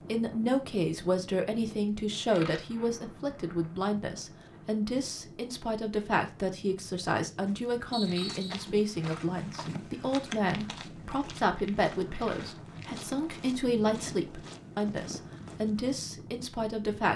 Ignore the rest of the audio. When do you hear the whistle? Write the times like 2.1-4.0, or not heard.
7.9-8.6.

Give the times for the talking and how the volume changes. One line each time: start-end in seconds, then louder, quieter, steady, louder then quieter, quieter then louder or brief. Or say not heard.
0.1-17.1 steady.